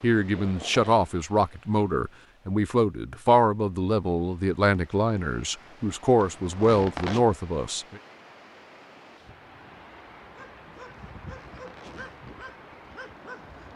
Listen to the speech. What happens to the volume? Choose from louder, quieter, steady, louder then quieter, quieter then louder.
steady.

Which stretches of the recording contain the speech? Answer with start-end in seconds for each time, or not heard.
0.0-8.0.